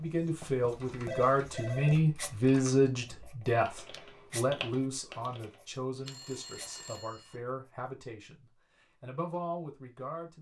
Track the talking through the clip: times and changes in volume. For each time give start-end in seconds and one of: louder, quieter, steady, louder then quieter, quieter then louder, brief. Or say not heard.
0.0-10.3 quieter.